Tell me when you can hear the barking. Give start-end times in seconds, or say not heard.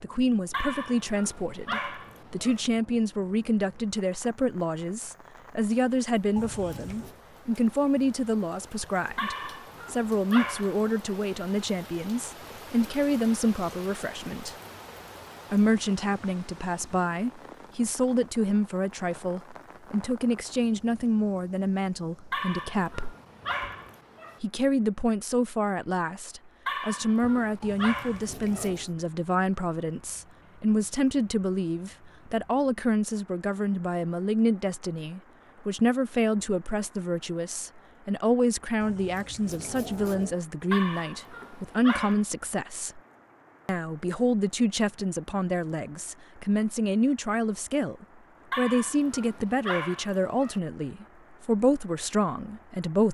0.5-2.6, 9.2-10.9, 22.3-24.4, 26.6-28.8, 40.7-42.2, 48.5-50.6.